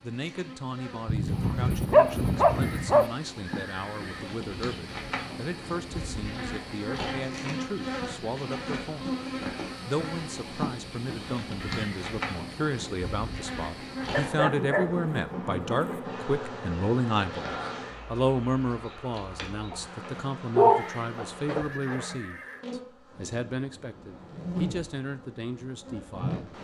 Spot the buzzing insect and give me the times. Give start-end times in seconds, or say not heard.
0.0-26.5.